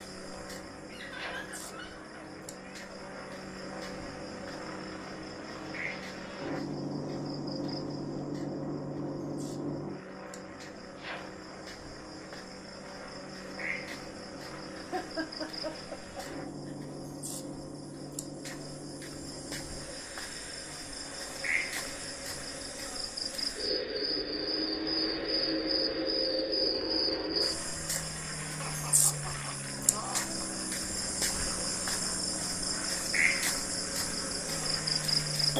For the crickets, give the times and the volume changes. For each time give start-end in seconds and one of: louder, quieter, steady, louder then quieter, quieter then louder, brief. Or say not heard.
0.0-35.5 louder.